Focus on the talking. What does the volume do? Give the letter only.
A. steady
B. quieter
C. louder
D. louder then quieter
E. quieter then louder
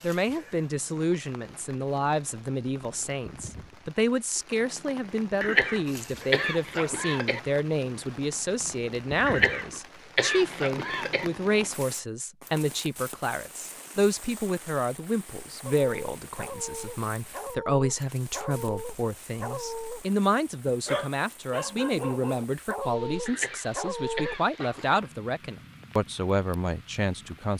A.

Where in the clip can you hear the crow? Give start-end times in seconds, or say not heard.
not heard.